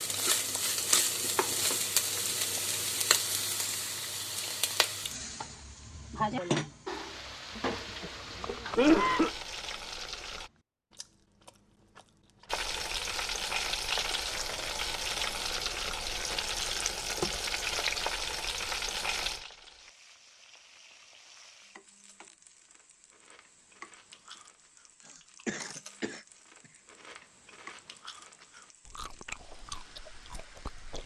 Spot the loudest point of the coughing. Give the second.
9 s.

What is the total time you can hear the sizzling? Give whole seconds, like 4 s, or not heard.
29 s.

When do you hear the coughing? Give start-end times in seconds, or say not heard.
7.5-9.3, 25.1-26.7.